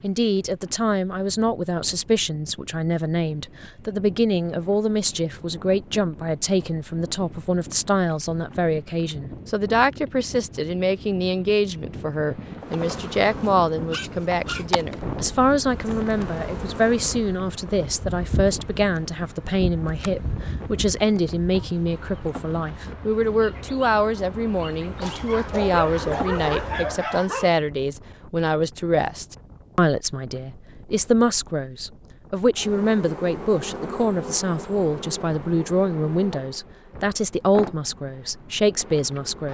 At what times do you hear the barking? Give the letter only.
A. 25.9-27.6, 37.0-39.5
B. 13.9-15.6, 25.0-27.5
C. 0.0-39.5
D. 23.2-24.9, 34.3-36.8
B.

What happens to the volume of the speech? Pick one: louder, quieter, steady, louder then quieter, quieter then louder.
steady.